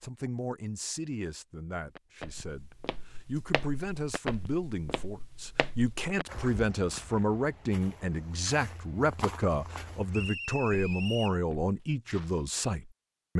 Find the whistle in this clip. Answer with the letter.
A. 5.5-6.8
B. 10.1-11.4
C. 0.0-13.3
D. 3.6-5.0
B.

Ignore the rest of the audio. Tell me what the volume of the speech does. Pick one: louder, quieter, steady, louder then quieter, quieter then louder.
louder.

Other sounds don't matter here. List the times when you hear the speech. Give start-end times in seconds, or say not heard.
0.0-13.3.